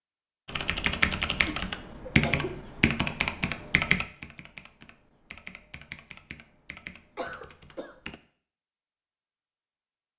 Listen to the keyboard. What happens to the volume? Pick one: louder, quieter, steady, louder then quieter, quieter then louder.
quieter.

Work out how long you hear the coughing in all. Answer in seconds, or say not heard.
2 s.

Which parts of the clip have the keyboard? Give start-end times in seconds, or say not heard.
0.5-8.2.